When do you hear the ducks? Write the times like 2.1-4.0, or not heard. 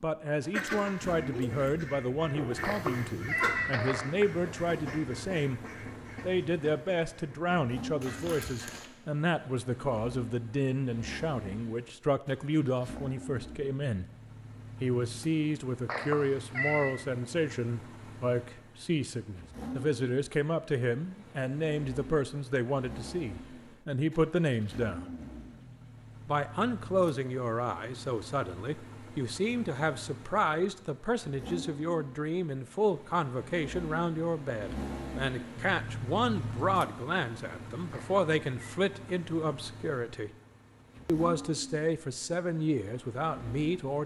0.5-8.9.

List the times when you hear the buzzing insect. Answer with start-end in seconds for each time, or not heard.
not heard.